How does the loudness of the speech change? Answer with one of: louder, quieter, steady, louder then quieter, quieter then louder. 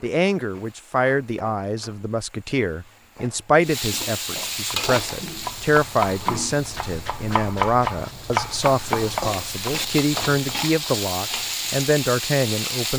steady.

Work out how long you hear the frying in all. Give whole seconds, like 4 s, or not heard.
13 s.